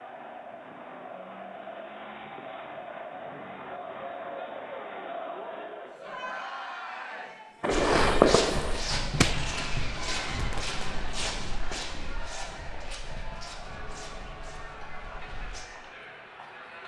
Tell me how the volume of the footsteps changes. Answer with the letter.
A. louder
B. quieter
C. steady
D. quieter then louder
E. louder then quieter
B.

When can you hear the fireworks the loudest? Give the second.
8 s.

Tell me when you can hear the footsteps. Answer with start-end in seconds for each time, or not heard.
7.7-15.7.